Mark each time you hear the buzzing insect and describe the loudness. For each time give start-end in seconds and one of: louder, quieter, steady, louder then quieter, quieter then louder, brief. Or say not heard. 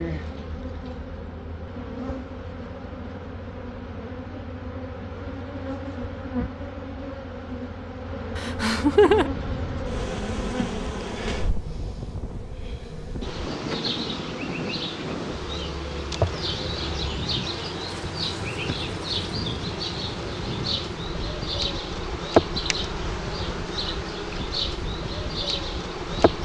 0.0-26.4 louder.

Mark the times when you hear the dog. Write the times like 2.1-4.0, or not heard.
not heard.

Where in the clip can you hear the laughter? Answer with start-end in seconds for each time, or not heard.
8.3-9.3.